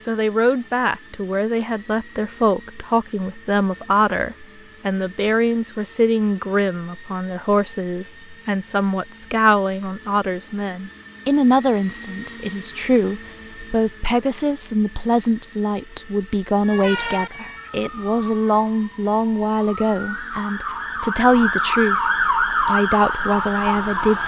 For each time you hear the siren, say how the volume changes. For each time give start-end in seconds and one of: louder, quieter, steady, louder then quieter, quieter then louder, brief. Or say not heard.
16.6-24.2 quieter then louder.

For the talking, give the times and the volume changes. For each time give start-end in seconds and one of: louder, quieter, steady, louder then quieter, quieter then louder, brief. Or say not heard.
0.1-24.2 steady.